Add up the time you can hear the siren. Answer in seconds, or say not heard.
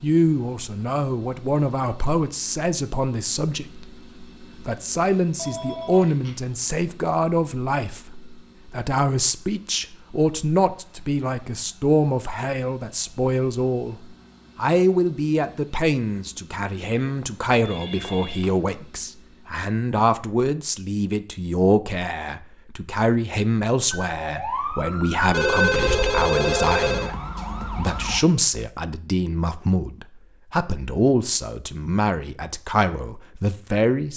4 s.